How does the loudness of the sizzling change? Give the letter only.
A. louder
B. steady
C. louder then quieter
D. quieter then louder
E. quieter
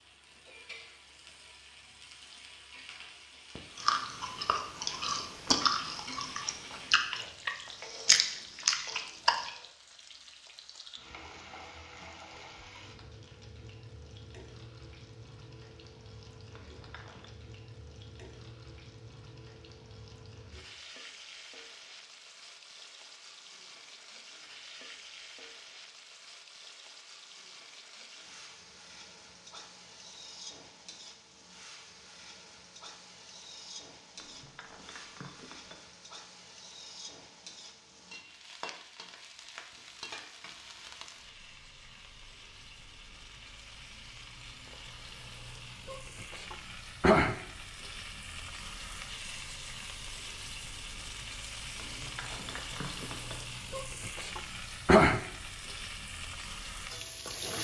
A.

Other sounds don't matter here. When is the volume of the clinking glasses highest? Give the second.
53 s.